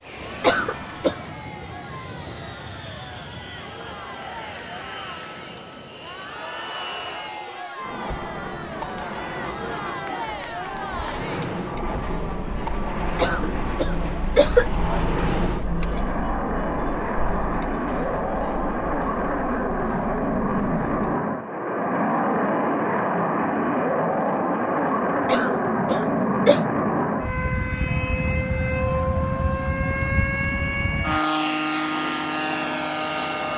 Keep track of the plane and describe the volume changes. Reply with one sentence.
The loudness of the plane goes up.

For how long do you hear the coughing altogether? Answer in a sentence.
You can hear the coughing for 4 seconds altogether.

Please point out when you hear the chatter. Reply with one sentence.
The chatter can be heard from 0.1 to 21.1 s.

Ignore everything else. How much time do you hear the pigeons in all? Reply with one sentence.
You can't hear the pigeons here.